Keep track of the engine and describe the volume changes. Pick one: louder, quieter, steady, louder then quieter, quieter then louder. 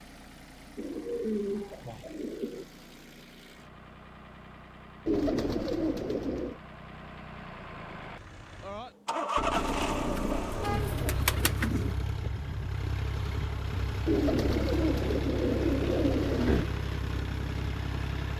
louder.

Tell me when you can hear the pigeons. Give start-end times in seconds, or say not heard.
0.8-2.6, 5.0-6.6, 9.7-11.9, 14.1-16.6.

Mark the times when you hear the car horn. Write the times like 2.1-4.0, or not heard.
9.3-11.3.